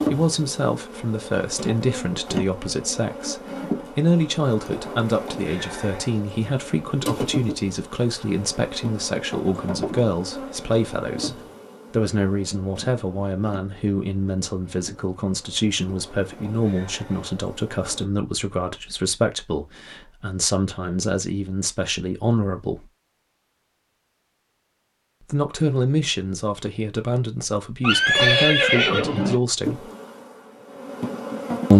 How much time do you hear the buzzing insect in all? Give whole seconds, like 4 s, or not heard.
20 s.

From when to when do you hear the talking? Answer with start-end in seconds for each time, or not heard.
0.0-22.9, 25.2-29.9.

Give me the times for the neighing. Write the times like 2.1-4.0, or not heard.
27.8-29.4.